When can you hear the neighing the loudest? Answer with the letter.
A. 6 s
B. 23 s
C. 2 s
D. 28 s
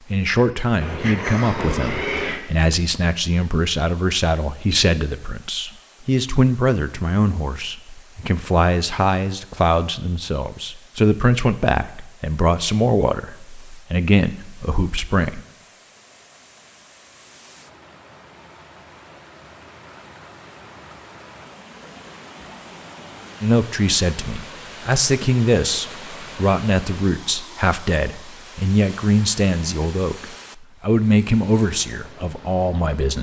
C.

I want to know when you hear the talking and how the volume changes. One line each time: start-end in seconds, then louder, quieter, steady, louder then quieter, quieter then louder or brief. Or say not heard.
0.1-15.4 steady
23.4-33.1 steady.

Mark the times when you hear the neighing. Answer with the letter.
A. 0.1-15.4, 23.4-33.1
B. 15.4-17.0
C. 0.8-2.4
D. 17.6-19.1
C.